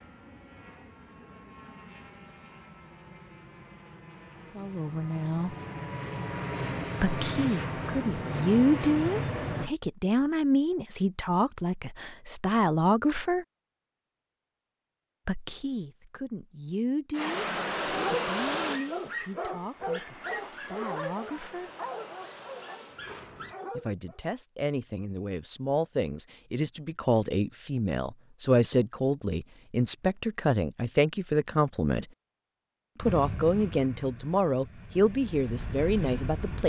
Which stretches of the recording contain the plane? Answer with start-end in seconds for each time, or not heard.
0.0-9.7, 17.1-23.6, 33.0-36.6.